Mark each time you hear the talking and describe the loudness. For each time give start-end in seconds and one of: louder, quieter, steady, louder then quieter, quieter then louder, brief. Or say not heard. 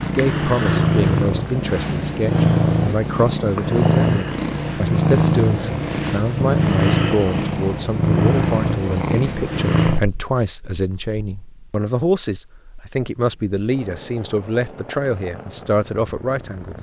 0.0-16.7 steady.